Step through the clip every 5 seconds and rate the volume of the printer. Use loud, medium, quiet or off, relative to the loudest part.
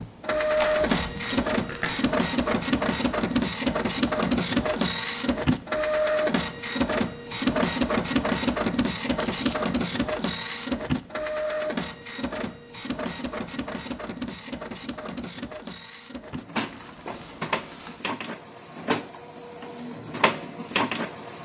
loud, loud, medium, medium, medium.